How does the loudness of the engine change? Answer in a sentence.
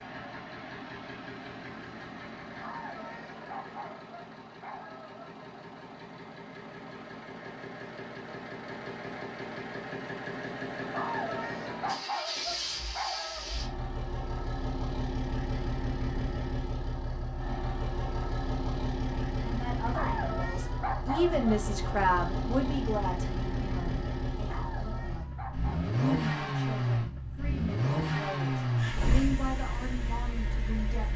The volume of the engine goes up.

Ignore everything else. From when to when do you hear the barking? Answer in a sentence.
You can hear the barking from 2.6 to 5.3 s, from 10.9 to 13.6 s, from 19.9 to 21.4 s and from 24.4 to 25.9 s.